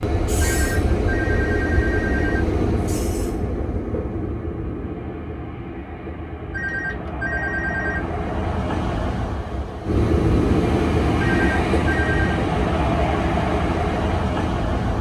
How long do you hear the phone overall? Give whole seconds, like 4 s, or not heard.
5 s.